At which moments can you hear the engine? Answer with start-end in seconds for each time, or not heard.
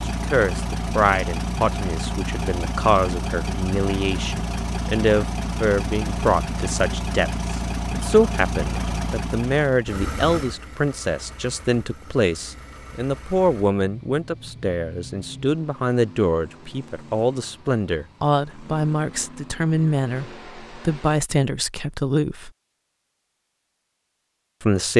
0.0-21.2.